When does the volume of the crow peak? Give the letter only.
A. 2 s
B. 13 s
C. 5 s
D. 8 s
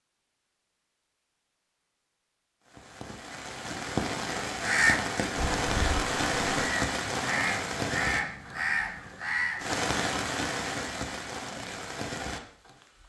C.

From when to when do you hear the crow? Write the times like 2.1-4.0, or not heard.
4.6-9.8.